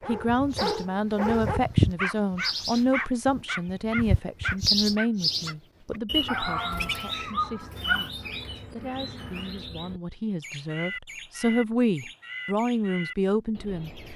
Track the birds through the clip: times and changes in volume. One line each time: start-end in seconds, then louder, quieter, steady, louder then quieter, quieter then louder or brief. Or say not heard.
0.0-14.1 quieter.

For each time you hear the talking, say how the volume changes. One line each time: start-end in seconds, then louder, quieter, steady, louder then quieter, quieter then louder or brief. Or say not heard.
0.1-13.9 quieter then louder.